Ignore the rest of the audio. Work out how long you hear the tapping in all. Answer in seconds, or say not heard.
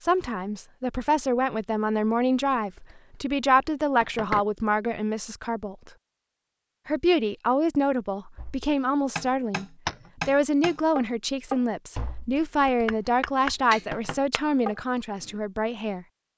7 s.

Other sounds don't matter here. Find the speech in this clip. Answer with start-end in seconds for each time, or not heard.
0.0-5.9, 6.8-9.7, 10.2-16.1.